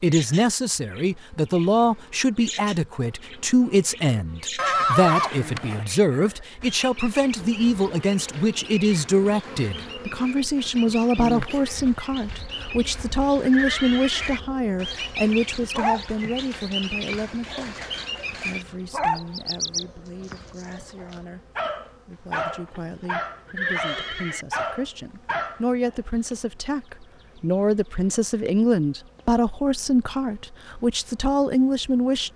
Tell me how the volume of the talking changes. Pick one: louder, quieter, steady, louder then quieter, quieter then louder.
quieter then louder.